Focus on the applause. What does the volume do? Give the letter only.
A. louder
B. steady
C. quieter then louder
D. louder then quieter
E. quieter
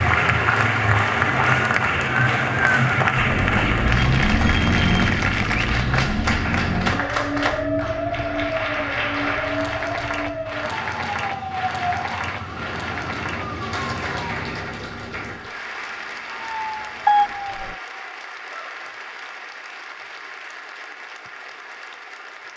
E.